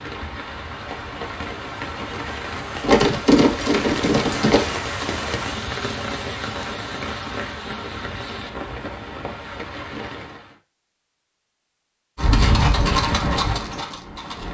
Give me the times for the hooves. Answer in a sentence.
The hooves can be heard from 2.8 to 4.7 s and from 12.2 to 14.4 s.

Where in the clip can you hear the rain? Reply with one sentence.
The rain can be heard from 0.0 to 10.6 s.